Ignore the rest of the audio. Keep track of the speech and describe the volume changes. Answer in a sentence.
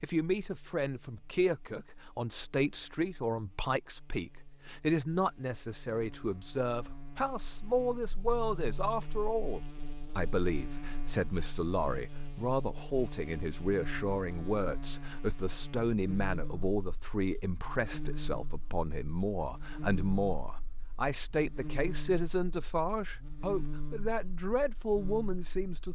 The volume of the speech stays about the same.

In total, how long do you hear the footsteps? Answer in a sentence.
You can't hear the footsteps here.